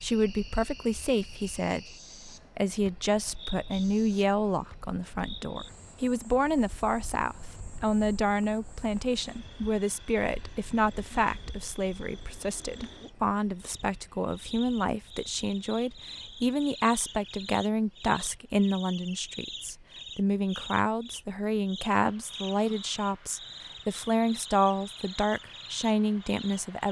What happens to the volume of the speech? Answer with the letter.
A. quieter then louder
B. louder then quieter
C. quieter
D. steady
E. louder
D.